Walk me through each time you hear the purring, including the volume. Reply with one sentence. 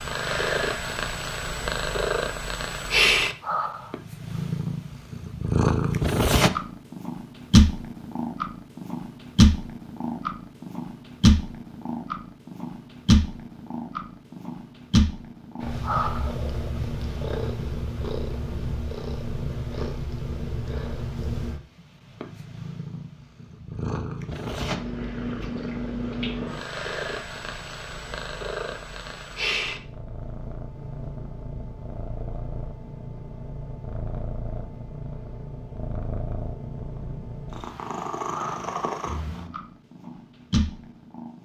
You can hear the purring from 0.0 to 41.4 s, getting quieter.